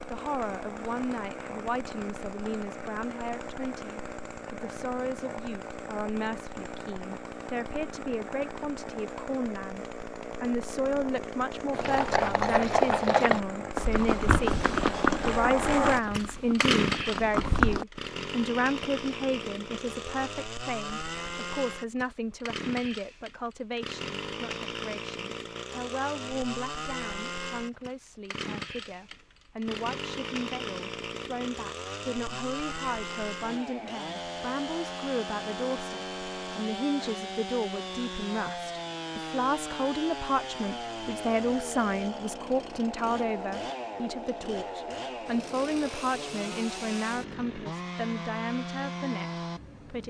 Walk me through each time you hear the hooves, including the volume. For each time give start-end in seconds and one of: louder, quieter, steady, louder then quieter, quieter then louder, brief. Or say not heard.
11.7-17.9 quieter.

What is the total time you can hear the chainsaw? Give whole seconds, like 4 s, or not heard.
50 s.